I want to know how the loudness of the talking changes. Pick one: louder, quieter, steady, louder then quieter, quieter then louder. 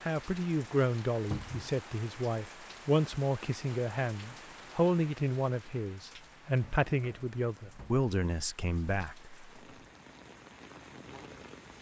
steady.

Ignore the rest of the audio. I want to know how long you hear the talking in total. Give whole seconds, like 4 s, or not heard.
9 s.